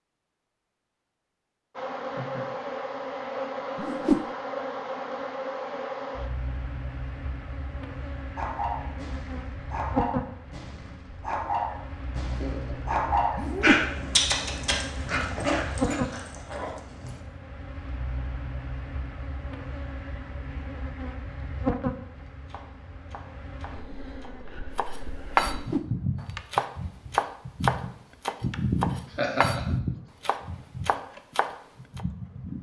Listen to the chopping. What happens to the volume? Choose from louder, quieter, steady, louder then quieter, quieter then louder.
louder then quieter.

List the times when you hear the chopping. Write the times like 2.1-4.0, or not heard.
21.8-32.0.